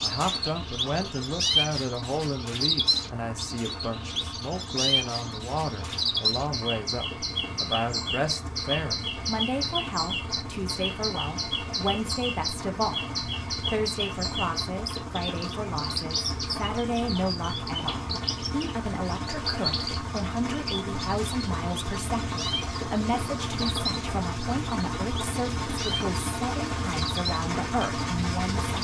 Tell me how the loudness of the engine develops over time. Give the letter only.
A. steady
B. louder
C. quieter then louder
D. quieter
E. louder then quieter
B.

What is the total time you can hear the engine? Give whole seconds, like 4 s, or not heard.
29 s.